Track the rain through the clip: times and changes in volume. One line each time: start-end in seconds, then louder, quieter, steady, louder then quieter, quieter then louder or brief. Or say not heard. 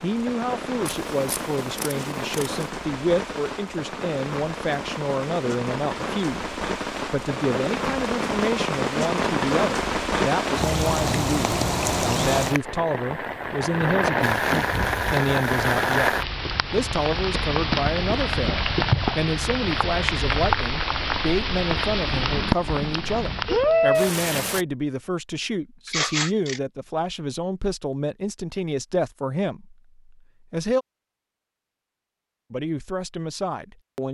0.0-24.6 louder.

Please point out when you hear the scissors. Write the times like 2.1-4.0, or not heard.
0.8-2.6, 25.9-26.6.